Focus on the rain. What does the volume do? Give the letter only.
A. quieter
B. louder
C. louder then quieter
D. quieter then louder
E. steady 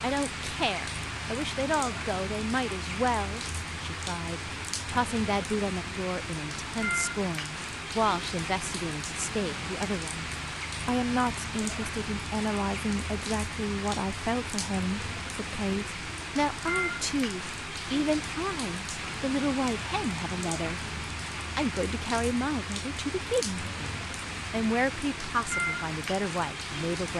E.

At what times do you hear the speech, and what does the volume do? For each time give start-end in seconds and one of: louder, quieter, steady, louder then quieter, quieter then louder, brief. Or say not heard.
0.0-27.1 steady.